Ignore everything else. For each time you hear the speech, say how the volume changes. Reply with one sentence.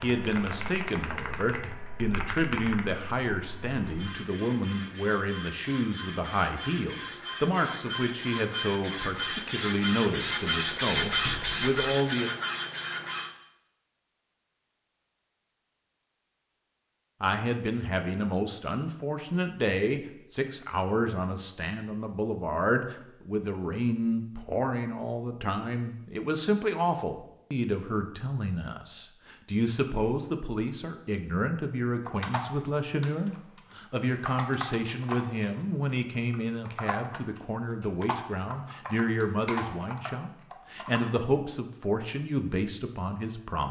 You can hear the speech from 0.0 to 12.3 s, at a steady volume; and from 17.2 to 43.6 s, at a steady volume.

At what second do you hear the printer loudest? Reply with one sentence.
The loudest moment of the printer is at 11 seconds.